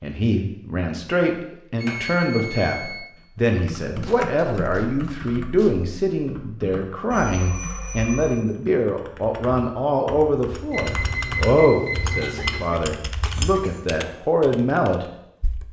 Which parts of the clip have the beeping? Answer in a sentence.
The beeping can be heard from 1.8 to 3.0 s, from 7.1 to 8.4 s and from 10.7 to 12.7 s.